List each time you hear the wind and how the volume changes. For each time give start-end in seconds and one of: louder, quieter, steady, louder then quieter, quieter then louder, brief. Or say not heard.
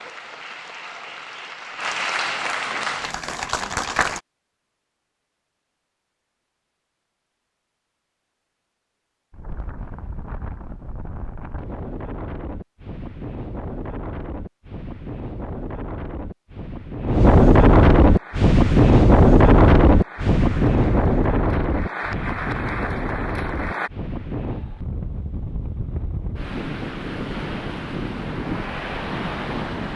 9.3-29.9 louder then quieter.